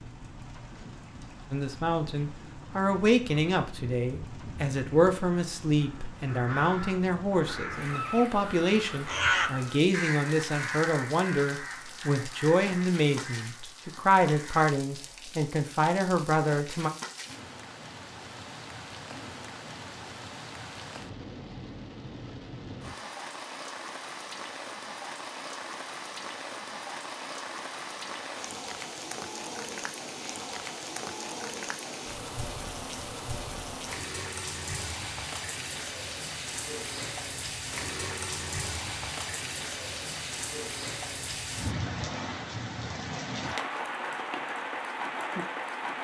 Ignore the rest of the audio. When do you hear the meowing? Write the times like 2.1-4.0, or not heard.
not heard.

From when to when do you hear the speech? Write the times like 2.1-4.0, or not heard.
1.5-16.9.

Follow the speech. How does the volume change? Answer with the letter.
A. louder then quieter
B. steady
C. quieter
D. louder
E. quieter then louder
B.